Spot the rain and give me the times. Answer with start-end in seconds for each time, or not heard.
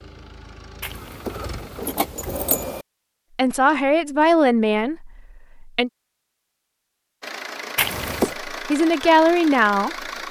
not heard.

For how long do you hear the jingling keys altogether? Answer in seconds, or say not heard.
3 s.